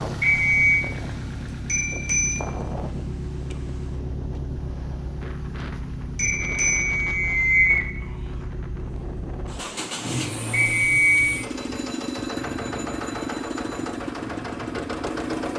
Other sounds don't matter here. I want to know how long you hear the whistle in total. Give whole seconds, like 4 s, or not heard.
3 s.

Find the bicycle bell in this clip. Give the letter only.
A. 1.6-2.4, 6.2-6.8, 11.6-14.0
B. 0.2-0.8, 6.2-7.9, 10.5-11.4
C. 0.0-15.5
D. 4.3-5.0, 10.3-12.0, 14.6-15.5
A.